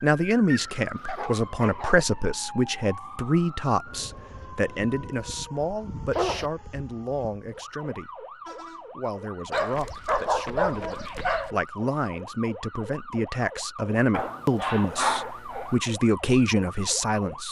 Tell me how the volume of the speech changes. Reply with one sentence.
The loudness of the speech goes down, then up.